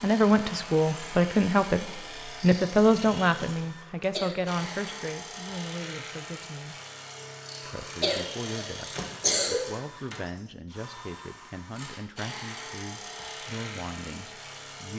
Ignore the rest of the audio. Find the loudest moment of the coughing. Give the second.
9 s.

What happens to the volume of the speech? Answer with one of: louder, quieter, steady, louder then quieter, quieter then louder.
quieter.